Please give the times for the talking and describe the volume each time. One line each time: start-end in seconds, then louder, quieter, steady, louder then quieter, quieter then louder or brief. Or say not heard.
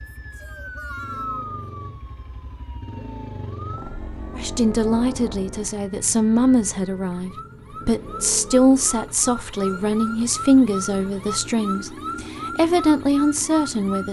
4.3-14.0 steady.